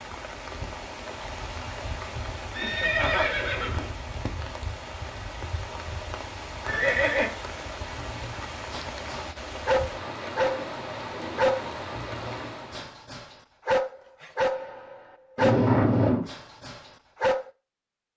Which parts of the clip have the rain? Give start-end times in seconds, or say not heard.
0.0-12.9.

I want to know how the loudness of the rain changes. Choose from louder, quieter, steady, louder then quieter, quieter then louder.
steady.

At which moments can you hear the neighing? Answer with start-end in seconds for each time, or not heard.
2.5-3.9, 6.6-7.3, 15.3-16.2.